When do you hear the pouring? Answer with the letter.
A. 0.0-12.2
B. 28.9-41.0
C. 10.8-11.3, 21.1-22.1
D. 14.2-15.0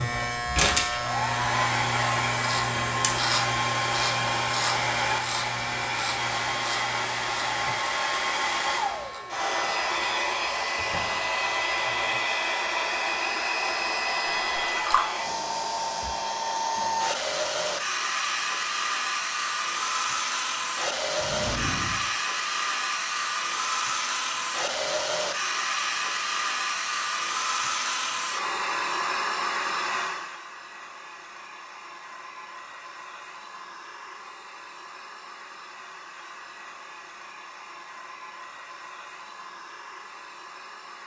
D.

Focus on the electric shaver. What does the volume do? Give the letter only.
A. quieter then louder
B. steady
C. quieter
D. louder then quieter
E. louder
C.